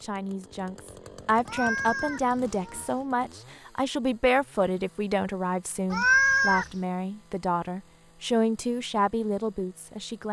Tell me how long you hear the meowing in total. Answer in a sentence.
The meowing can be heard for 2 seconds in total.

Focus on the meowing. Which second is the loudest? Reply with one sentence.
The loudest moment of the meowing is at 6 seconds.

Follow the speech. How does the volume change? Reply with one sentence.
The loudness of the speech stays about the same.